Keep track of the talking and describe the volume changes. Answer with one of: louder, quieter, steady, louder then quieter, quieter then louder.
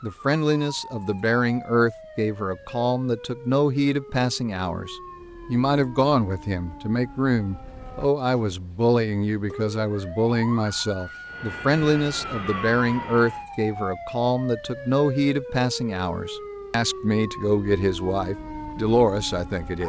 steady.